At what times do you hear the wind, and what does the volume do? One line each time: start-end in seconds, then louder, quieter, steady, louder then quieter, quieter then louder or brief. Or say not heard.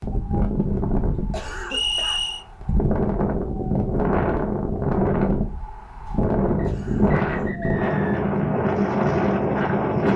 0.0-10.1 louder.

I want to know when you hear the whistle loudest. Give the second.
2 s.